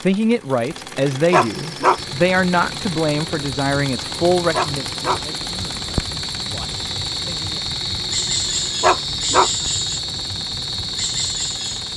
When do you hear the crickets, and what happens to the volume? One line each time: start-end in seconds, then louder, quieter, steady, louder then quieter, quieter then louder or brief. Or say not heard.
1.9-11.9 louder.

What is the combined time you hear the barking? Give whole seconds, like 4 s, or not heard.
2 s.